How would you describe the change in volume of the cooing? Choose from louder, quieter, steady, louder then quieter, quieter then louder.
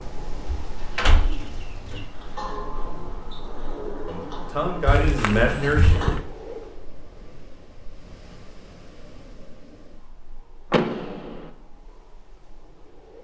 louder.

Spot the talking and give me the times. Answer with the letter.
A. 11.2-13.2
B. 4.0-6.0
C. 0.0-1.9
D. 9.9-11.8
B.